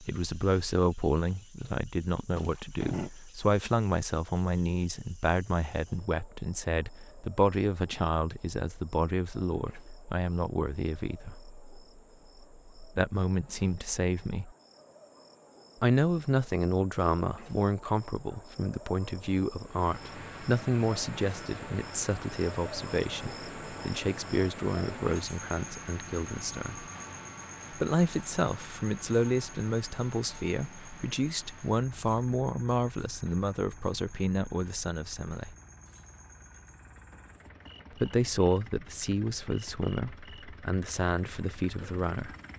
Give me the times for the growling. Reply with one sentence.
The growling can be heard from 2.4 to 3.1 s.